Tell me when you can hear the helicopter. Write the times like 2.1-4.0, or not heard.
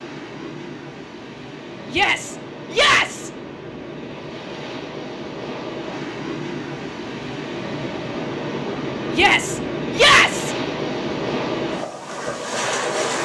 not heard.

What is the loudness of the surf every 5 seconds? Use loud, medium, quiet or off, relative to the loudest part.
medium, loud, loud.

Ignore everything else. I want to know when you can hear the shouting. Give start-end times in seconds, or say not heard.
1.9-3.3, 9.1-10.6.